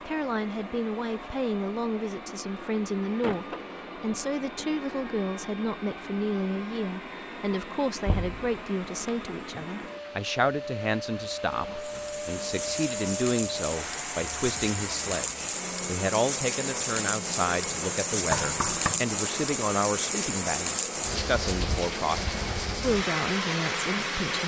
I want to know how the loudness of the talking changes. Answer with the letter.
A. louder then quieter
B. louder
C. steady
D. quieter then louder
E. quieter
C.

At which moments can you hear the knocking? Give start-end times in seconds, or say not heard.
8.1-8.6, 18.3-19.0.